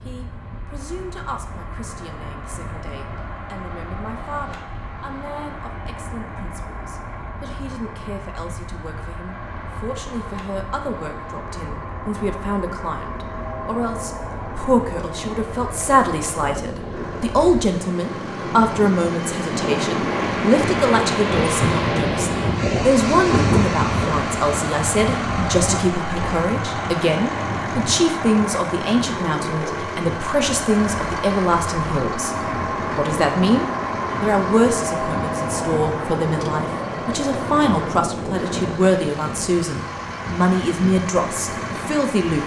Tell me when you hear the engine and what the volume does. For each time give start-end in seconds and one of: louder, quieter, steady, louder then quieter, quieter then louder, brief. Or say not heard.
0.0-42.4 louder.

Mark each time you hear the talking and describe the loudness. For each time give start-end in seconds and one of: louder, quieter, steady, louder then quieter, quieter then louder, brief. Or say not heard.
0.0-42.4 louder.